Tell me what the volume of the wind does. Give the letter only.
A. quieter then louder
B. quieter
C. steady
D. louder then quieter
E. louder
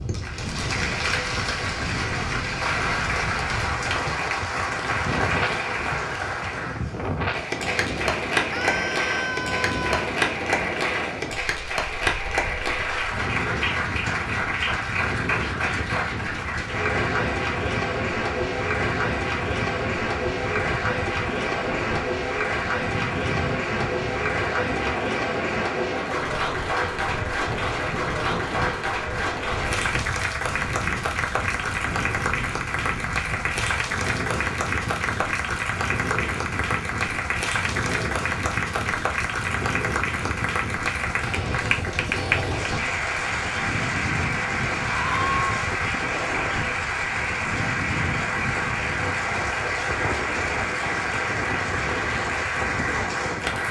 C.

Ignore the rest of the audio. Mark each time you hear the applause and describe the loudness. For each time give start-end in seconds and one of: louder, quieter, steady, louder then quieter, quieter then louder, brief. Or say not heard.
0.0-53.6 steady.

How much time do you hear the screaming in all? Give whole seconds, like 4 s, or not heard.
2 s.